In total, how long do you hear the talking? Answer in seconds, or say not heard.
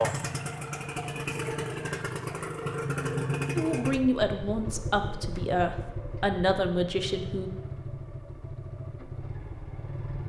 4 s.